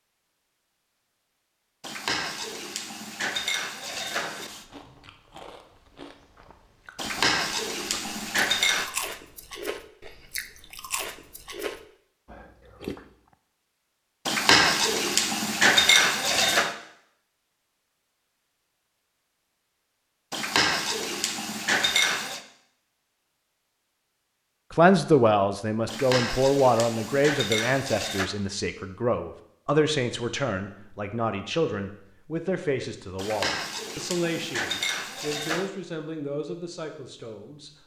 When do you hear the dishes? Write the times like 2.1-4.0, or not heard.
1.8-4.7, 7.0-8.9, 14.2-16.7, 20.3-22.4, 25.9-28.3, 33.1-35.7.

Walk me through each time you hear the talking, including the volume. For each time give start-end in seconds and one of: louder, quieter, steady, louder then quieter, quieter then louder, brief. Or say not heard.
24.7-37.7 quieter.